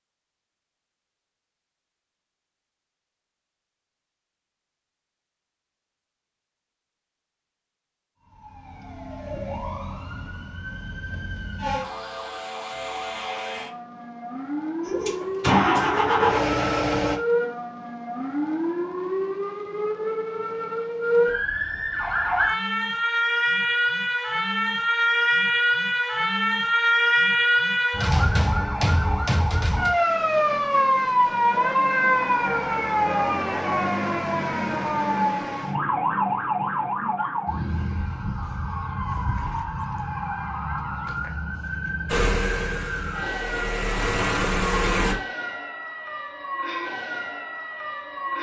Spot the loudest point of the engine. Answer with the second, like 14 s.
16 s.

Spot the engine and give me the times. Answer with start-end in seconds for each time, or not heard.
14.8-17.2, 42.1-45.1.